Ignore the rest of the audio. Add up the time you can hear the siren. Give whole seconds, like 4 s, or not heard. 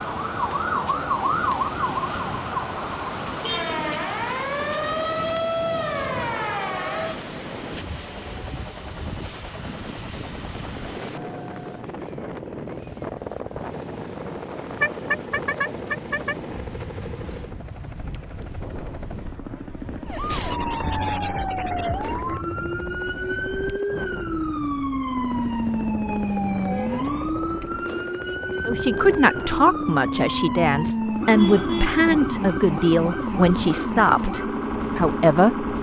23 s.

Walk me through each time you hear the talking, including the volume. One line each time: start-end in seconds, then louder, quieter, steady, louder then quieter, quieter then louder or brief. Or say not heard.
28.6-35.6 steady.